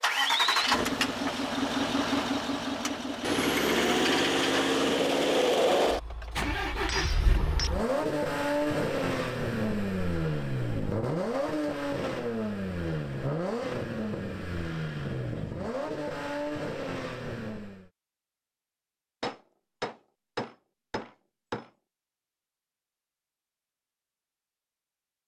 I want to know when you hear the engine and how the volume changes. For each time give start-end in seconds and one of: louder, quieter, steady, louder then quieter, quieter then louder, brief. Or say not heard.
0.0-17.9 quieter.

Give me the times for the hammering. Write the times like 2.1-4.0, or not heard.
6.4-7.7, 19.2-21.7.